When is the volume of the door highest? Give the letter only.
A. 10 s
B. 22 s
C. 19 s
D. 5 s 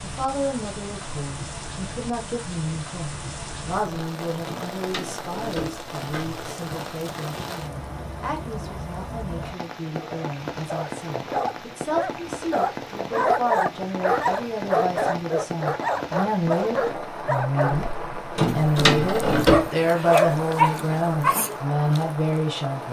C.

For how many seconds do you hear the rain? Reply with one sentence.
You can hear the rain for 23 seconds altogether.